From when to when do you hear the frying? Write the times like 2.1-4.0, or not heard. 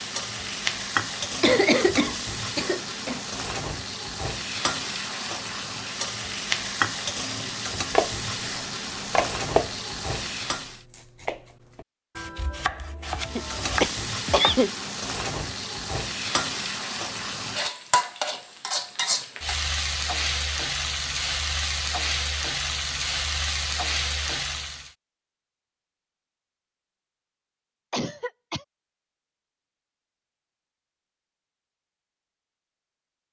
0.0-10.8, 13.2-24.9.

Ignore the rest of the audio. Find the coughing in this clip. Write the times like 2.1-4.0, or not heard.
1.4-3.2, 13.3-14.7, 27.9-28.6.